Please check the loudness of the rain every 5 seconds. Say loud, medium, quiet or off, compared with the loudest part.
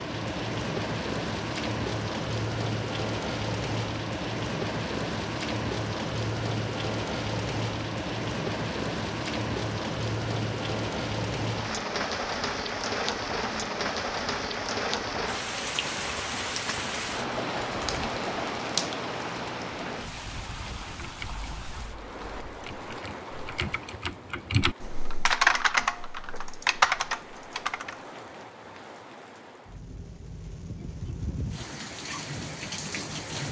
loud, loud, loud, loud, medium, quiet, medium.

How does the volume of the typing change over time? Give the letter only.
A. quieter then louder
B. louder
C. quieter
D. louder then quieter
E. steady
B.